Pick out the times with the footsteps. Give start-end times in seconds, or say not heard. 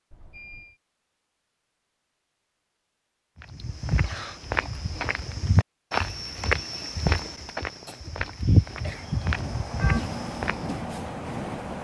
3.4-10.8.